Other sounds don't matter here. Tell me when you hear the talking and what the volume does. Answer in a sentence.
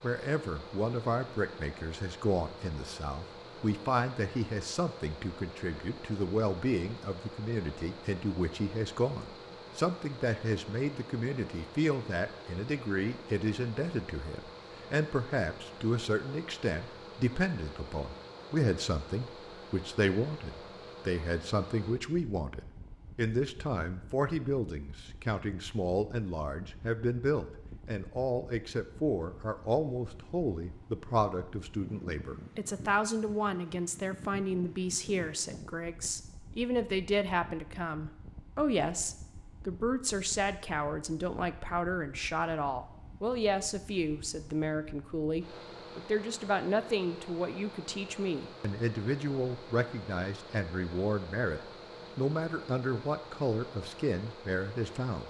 The talking can be heard from 0.0 to 55.2 s, at a steady volume.